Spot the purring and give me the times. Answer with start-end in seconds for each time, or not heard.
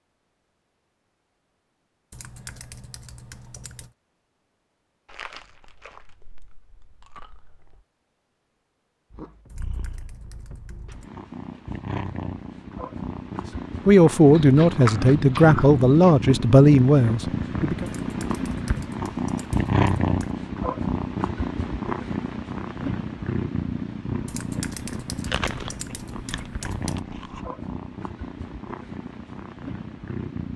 9.1-30.5.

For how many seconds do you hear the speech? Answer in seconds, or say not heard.
4 s.